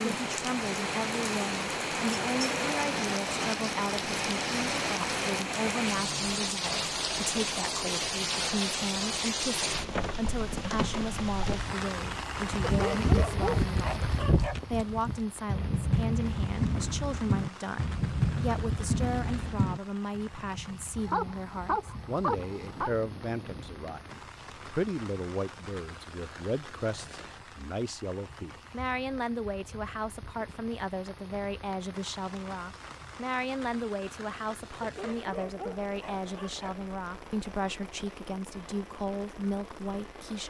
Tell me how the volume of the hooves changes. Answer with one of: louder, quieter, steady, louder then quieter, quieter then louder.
quieter.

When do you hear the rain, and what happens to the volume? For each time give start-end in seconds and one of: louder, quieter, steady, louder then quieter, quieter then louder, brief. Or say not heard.
0.0-40.4 quieter.